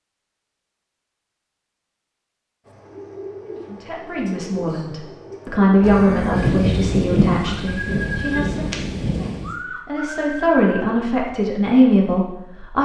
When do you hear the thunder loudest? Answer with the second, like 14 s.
7 s.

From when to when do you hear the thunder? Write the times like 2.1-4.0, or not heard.
6.3-9.5.